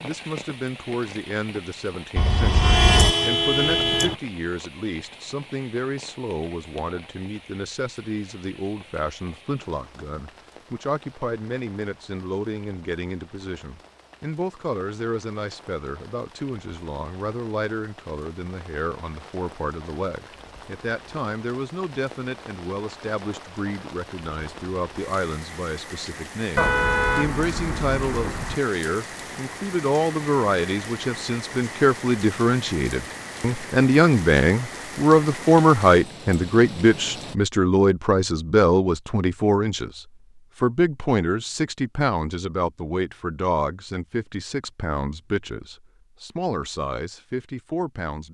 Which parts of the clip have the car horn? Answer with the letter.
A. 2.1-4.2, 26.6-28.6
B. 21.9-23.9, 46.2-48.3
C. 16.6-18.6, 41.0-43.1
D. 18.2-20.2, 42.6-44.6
A.